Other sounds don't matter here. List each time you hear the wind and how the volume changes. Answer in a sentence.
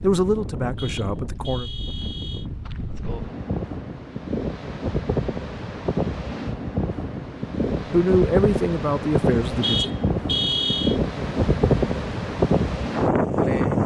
The wind can be heard from 0.0 to 13.8 s, getting louder.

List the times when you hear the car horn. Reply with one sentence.
You can hear the car horn from 0.8 to 2.5 s and from 9.6 to 11.0 s.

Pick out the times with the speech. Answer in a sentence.
You can hear the speech from 0.0 to 1.7 s and from 7.9 to 9.8 s.